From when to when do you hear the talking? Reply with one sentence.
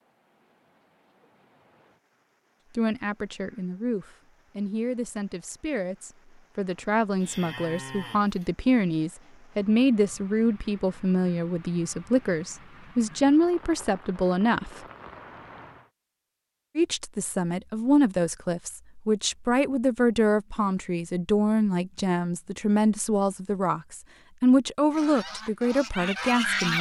You can hear the talking from 2.8 to 14.7 s and from 16.8 to 26.7 s.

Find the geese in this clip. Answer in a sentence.
The geese can be heard from 24.9 to 26.7 s.